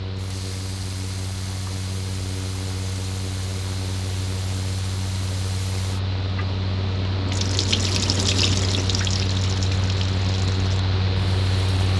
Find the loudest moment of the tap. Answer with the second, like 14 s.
8 s.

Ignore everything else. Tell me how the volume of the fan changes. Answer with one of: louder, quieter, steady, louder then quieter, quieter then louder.
louder.